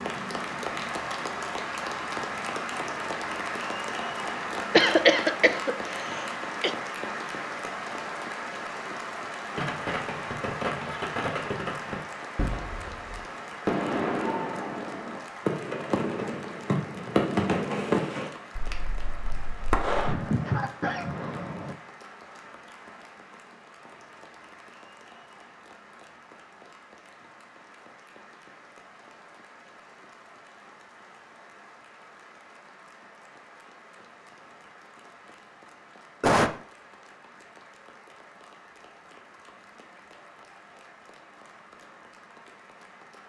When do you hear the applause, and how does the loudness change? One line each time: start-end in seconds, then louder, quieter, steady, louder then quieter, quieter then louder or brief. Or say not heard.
0.0-43.2 quieter.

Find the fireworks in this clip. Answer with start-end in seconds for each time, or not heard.
9.6-20.1.